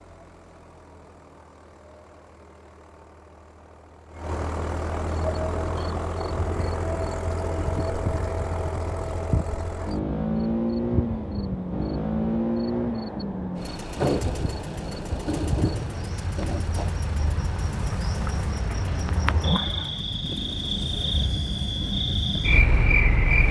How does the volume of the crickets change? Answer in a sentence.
The volume of the crickets goes up.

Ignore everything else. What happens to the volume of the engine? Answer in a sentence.
The volume of the engine goes up, then down.